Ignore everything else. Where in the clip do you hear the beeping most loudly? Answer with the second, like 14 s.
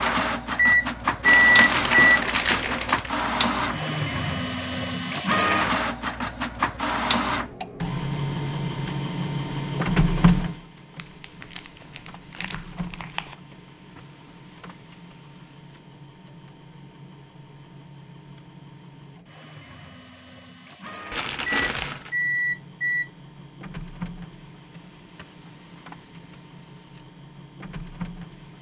1 s.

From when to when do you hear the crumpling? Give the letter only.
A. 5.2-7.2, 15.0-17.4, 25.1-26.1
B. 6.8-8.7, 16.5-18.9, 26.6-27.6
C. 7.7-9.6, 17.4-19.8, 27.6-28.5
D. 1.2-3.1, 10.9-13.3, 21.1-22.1
D.